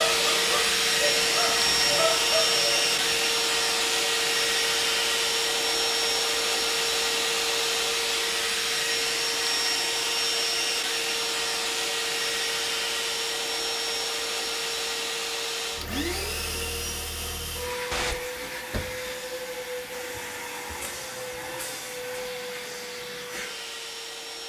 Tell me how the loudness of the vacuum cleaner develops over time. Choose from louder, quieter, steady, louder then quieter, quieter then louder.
quieter.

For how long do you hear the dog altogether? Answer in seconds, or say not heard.
3 s.